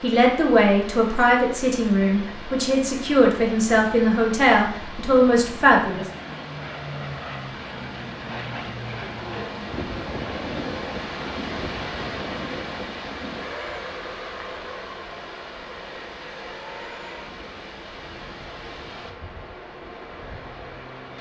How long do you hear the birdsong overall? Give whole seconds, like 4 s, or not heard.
not heard.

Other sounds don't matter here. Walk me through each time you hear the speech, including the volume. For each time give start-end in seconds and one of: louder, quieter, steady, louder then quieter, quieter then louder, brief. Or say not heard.
0.0-6.0 steady.